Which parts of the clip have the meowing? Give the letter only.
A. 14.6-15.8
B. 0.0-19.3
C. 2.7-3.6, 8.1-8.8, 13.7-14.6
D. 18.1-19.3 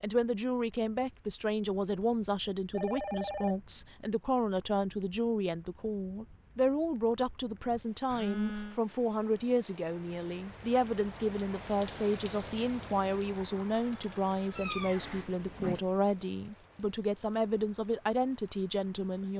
A.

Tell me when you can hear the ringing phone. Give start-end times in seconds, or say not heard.
2.7-3.6, 8.1-8.8, 13.7-14.6.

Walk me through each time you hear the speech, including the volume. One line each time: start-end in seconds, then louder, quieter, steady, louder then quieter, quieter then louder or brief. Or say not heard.
0.0-19.3 steady.